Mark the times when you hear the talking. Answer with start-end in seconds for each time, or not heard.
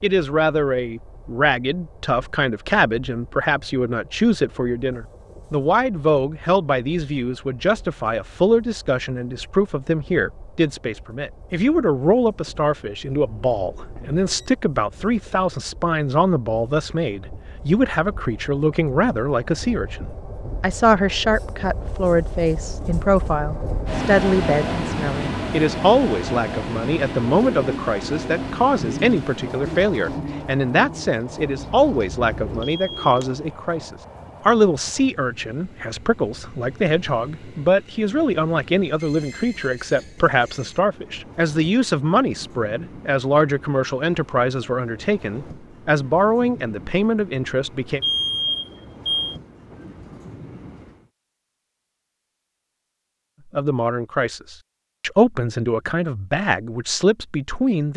0.0-48.0, 53.5-57.9.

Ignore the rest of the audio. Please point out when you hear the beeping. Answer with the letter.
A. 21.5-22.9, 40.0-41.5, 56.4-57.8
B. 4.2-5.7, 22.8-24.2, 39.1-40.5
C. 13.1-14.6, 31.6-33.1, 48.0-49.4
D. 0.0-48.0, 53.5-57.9
C.